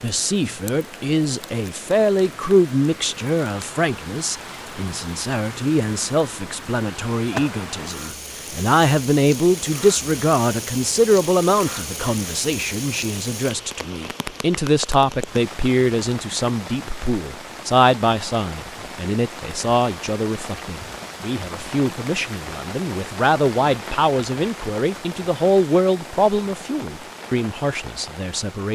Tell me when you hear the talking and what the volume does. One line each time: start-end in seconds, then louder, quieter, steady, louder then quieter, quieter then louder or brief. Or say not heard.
0.0-28.7 steady.